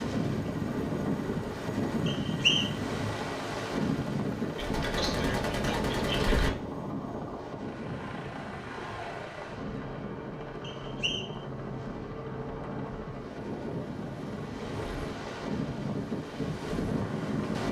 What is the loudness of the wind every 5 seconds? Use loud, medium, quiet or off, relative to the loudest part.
loud, medium, medium, loud.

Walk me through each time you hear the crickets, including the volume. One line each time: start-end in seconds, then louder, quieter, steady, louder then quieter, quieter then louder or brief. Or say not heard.
not heard.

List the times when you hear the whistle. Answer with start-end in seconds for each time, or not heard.
2.0-2.7, 10.6-11.3.